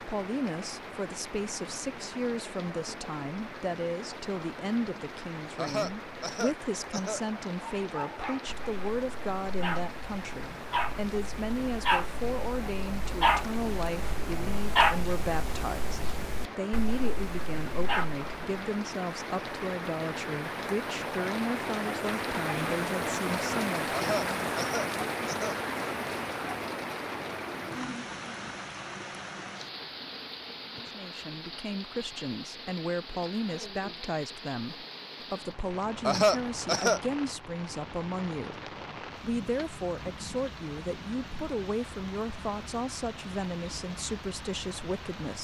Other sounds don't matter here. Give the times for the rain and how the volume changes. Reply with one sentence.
The rain can be heard from 0.0 to 45.3 s, getting louder then quieter.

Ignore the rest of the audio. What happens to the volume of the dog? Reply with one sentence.
The volume of the dog goes up, then down.